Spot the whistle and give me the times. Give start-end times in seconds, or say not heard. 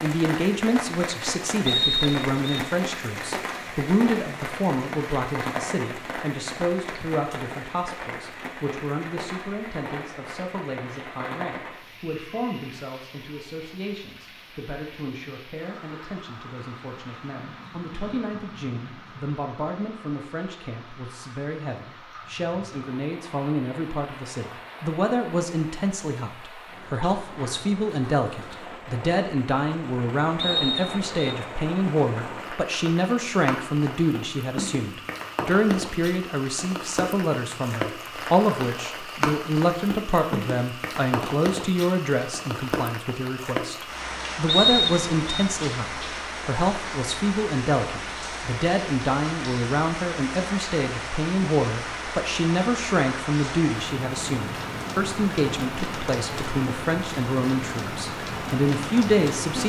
1.6-2.6, 30.4-31.2, 44.5-45.5.